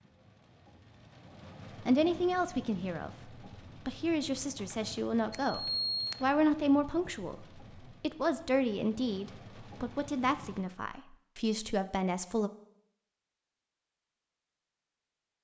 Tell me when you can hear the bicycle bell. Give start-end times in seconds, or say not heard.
5.3-6.2.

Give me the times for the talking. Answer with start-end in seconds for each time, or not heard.
1.8-12.5.